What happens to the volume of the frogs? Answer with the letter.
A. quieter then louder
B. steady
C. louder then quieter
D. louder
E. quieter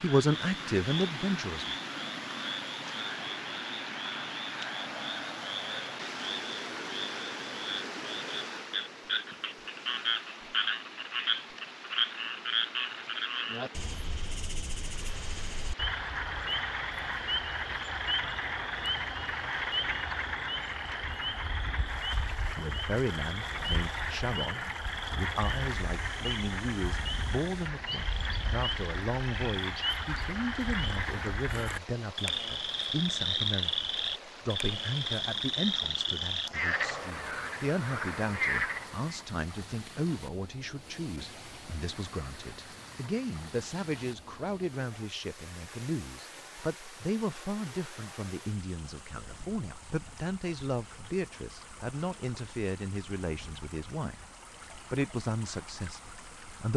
D.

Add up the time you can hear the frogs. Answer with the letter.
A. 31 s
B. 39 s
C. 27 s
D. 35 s
B.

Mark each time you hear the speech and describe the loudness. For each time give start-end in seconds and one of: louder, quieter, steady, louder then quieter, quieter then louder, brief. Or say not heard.
0.0-1.8 brief
22.6-54.2 steady
54.9-56.7 brief.